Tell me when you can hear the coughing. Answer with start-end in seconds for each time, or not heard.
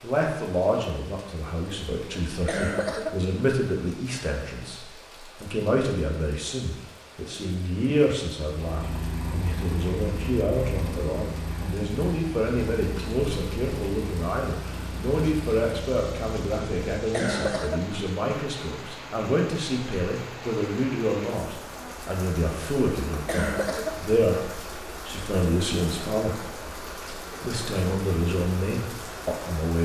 2.2-3.2, 16.9-17.9, 23.1-24.0.